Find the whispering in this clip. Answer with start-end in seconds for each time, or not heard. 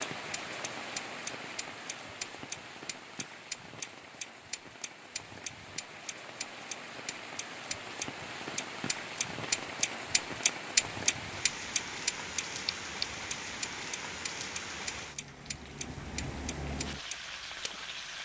not heard.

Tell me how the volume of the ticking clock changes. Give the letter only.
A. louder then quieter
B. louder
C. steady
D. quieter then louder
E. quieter
A.